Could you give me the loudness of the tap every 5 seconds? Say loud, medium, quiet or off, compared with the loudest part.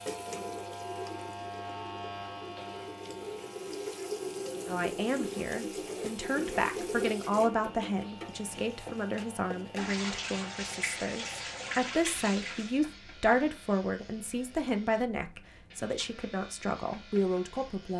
loud, loud, loud, off.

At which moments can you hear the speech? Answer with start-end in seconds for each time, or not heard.
4.7-17.9.